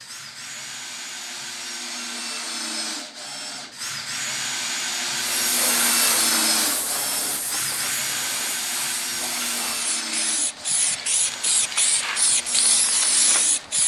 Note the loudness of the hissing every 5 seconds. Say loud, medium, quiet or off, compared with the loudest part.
off, medium, loud.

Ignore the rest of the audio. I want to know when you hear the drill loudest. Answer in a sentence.
The loudest moment of the drill is at 6 seconds.